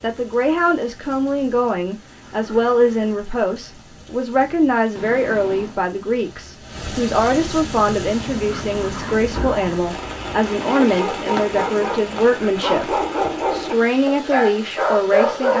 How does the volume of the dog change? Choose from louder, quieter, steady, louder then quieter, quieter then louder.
louder.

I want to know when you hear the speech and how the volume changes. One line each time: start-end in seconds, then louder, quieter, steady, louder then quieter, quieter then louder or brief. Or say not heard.
0.0-15.5 steady.